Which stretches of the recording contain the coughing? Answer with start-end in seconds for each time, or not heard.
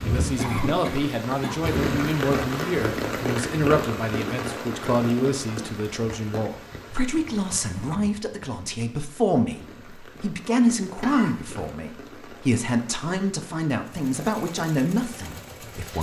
0.3-1.6, 11.0-11.8.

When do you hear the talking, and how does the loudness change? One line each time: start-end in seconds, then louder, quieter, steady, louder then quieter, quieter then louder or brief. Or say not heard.
0.0-15.9 steady.